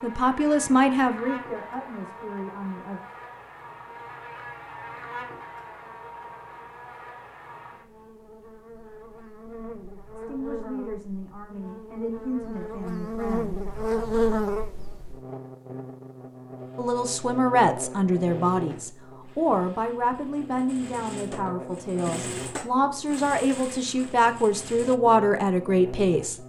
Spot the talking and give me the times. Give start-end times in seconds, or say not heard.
0.0-3.0, 10.2-13.6, 16.8-26.4.